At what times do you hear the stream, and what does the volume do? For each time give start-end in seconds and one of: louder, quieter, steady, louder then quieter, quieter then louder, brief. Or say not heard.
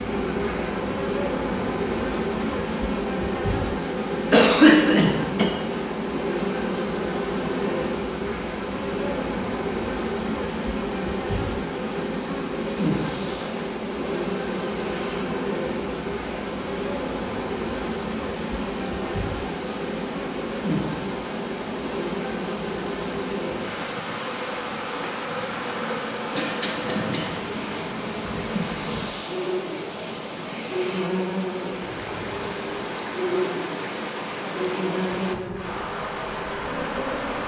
0.0-37.4 louder.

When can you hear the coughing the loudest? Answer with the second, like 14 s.
5 s.